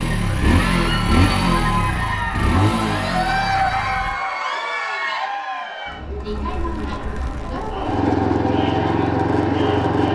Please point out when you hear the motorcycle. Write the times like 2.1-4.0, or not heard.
0.0-4.2, 6.2-10.1.